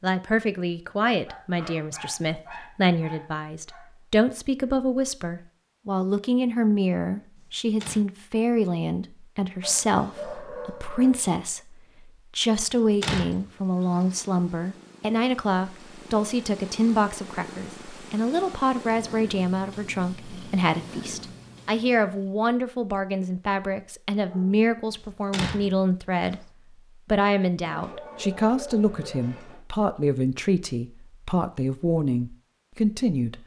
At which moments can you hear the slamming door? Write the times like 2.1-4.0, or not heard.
7.3-8.1, 13.0-14.2, 24.9-26.4.